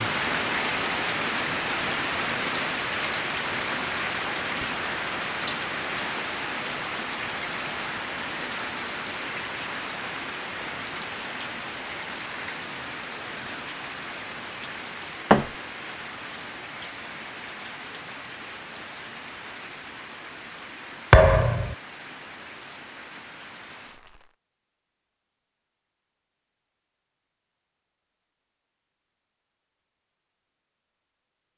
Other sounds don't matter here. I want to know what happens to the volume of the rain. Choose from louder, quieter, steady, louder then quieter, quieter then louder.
quieter.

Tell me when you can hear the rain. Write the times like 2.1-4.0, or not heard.
0.0-24.4.